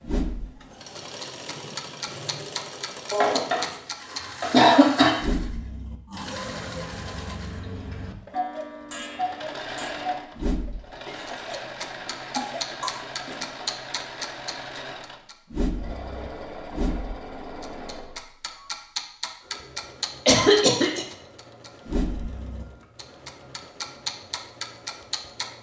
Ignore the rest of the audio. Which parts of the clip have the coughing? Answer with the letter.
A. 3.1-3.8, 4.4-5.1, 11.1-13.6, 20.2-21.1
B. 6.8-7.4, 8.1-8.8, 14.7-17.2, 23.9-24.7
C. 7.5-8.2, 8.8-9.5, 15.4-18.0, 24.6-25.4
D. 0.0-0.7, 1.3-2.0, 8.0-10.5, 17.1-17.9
A.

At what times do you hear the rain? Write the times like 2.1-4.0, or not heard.
not heard.